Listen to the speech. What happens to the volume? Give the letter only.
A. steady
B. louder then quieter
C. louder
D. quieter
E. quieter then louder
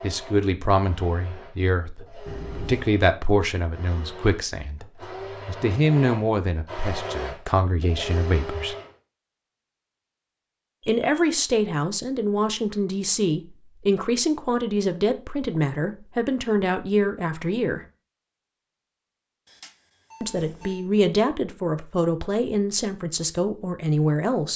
A.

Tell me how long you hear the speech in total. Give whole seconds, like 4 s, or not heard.
20 s.